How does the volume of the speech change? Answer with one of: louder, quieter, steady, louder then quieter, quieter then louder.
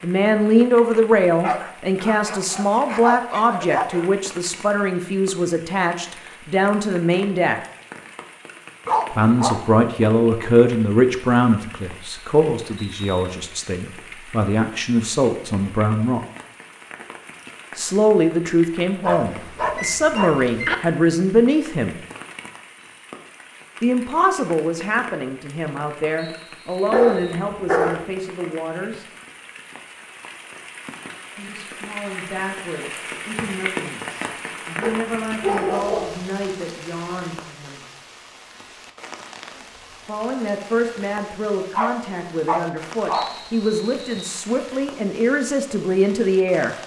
quieter then louder.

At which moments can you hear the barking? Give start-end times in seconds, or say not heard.
1.3-4.1, 8.8-9.6, 19.0-20.8, 26.9-28.1, 34.8-36.2, 41.7-43.3.